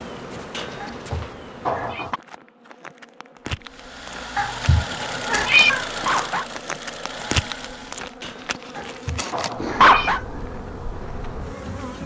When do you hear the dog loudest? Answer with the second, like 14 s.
10 s.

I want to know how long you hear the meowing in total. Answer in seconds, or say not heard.
4 s.